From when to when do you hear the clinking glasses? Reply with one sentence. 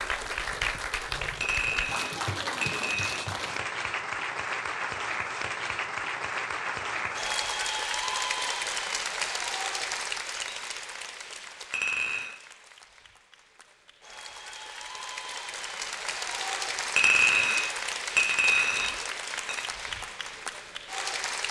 You can hear the clinking glasses from 1.4 to 3.2 s, from 11.7 to 12.3 s and from 16.9 to 19.6 s.